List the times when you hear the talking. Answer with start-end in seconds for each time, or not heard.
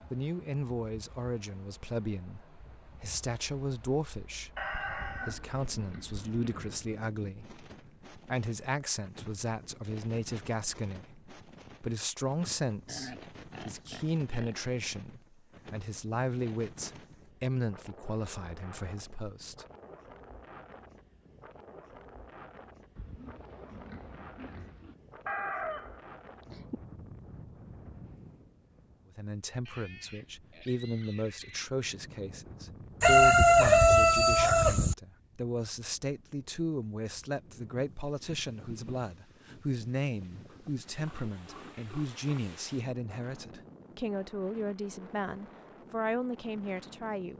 0.1-19.6, 29.1-47.3.